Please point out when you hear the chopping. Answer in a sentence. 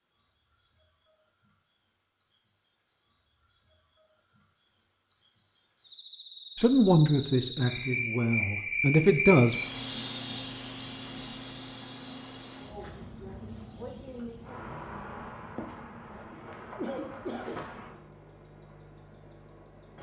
You can't hear the chopping here.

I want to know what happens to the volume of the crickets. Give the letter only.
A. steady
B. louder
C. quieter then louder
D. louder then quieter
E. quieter
D.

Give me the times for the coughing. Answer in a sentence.
You can hear the coughing from 16.8 to 17.6 s.